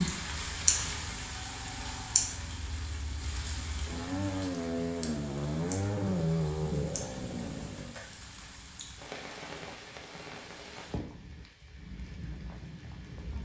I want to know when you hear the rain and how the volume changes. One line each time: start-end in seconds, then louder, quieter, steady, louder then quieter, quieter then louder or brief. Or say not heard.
0.0-13.4 quieter.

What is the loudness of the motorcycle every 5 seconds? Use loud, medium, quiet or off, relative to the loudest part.
medium, loud, off.